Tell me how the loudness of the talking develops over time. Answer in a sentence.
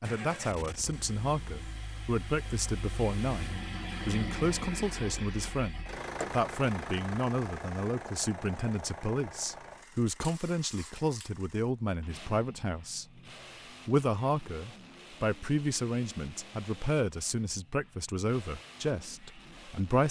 The loudness of the talking stays about the same.